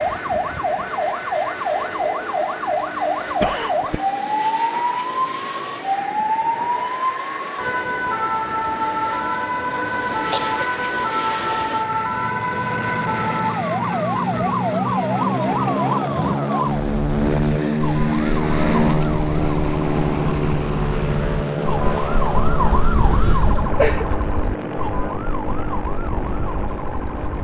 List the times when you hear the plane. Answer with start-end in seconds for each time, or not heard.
0.0-27.3.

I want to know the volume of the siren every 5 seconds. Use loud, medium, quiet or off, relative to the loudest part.
loud, loud, loud, loud, loud, medium.